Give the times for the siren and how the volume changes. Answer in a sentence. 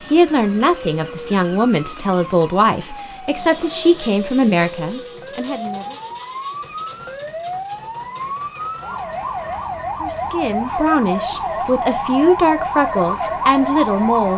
The siren can be heard from 0.1 to 14.3 s, getting louder.